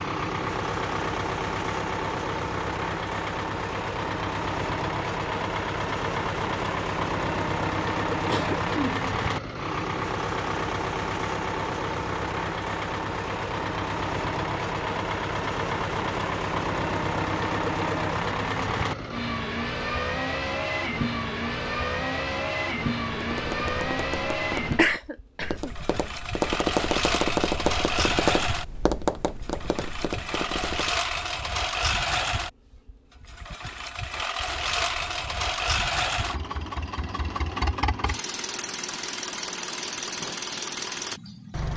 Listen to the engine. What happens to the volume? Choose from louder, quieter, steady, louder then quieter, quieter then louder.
steady.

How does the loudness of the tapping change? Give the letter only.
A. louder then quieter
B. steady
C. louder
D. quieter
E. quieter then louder
A.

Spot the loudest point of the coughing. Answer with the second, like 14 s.
25 s.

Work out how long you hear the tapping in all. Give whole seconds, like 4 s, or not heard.
8 s.